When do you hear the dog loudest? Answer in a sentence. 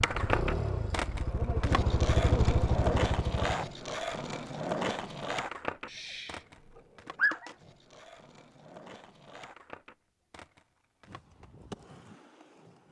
The volume of the dog peaks at 7 seconds.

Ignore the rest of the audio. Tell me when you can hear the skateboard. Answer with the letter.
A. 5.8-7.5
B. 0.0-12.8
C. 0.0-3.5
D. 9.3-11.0
B.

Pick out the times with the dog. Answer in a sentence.
You can hear the dog from 5.8 to 7.5 s.